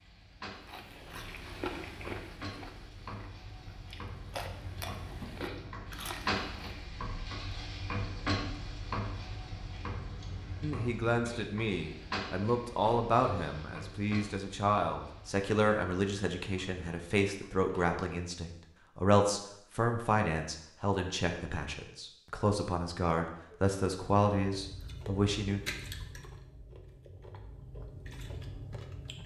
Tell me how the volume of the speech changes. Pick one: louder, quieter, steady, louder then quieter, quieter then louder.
steady.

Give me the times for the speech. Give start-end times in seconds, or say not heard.
10.6-25.6.